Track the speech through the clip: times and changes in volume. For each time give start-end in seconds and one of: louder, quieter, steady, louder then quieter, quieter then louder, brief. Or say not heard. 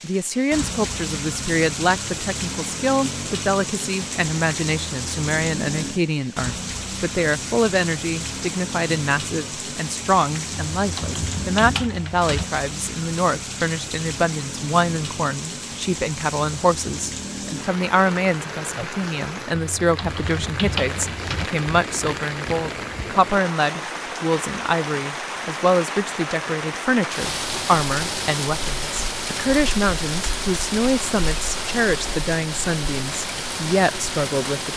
0.0-34.7 steady.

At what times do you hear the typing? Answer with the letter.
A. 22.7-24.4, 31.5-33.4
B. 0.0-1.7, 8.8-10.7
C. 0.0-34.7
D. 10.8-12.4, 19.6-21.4
D.